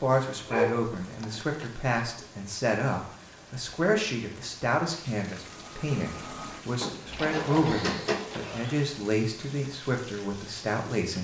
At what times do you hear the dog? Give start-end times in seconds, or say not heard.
0.5-1.7, 6.8-8.3.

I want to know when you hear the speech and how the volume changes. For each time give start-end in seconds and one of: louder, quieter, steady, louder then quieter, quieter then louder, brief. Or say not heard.
0.0-11.1 steady.